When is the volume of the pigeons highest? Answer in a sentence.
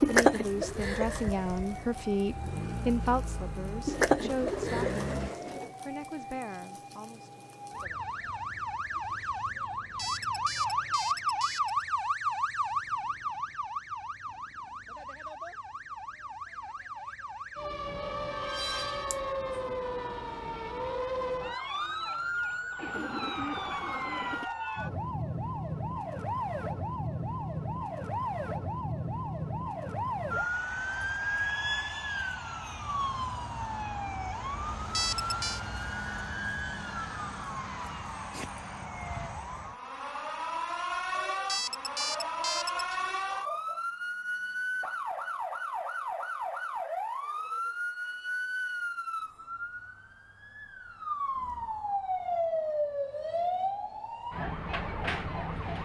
The volume of the pigeons peaks at 5 seconds.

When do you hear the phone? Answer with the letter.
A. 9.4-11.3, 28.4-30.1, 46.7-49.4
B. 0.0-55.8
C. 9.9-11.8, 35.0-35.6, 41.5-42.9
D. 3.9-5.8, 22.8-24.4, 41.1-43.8
C.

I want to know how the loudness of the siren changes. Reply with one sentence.
The loudness of the siren stays about the same.